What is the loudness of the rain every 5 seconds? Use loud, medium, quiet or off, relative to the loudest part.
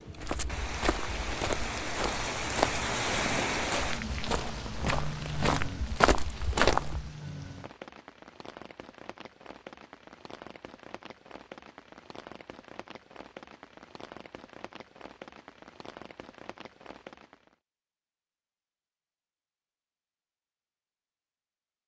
loud, medium, quiet, quiet, off.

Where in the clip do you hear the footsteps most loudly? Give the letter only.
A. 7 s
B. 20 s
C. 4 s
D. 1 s
A.